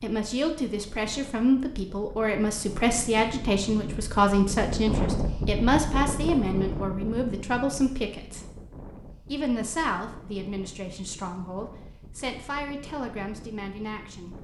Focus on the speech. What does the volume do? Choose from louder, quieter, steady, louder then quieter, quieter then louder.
quieter.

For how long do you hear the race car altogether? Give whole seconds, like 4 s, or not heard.
not heard.